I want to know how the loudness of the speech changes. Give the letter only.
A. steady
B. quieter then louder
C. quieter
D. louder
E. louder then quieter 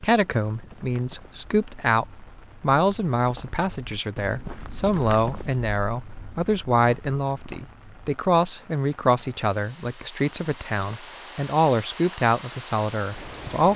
A.